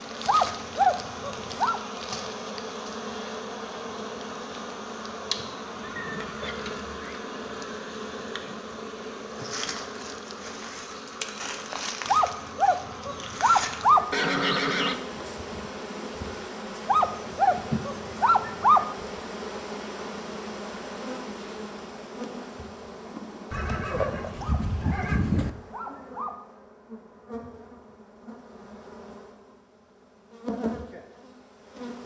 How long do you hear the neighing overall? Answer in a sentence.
The neighing can be heard for 4 seconds in total.